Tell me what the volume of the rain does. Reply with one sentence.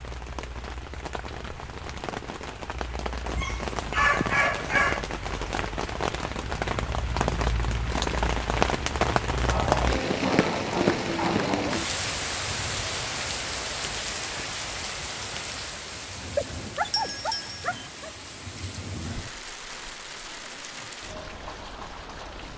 The loudness of the rain goes up, then down.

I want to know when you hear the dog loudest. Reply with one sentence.
The volume of the dog peaks at 4 seconds.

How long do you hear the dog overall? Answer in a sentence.
You can hear the dog for 6 seconds altogether.